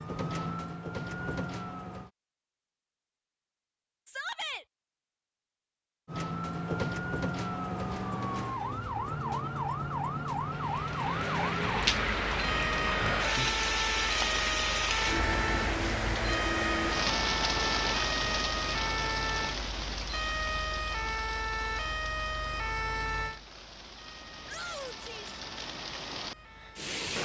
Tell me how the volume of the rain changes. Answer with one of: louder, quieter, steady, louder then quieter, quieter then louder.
quieter.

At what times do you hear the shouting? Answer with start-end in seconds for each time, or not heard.
4.0-4.7, 24.4-25.4.